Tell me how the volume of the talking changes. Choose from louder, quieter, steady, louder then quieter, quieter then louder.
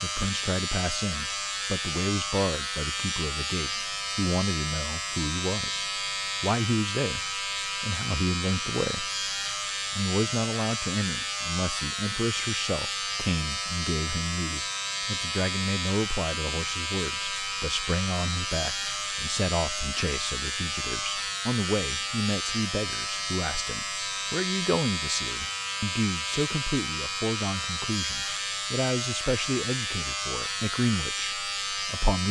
steady.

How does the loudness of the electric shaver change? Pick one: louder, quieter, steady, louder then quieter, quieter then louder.
steady.